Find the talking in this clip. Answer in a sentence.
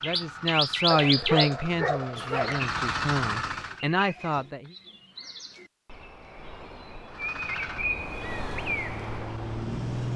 You can hear the talking from 0.0 to 4.8 s.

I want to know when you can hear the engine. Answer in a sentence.
The engine can be heard from 0.0 to 3.9 s and from 7.0 to 10.1 s.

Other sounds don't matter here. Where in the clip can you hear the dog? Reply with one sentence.
You can hear the dog from 0.9 to 2.6 s.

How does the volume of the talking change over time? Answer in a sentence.
The loudness of the talking goes down, then up.